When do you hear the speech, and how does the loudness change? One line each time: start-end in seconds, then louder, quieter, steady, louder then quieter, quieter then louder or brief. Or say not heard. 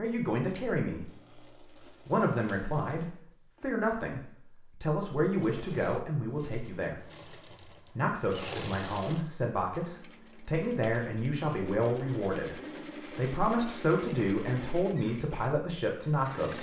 0.0-16.5 steady.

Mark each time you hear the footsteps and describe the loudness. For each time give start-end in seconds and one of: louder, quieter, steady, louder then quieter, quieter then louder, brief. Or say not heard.
not heard.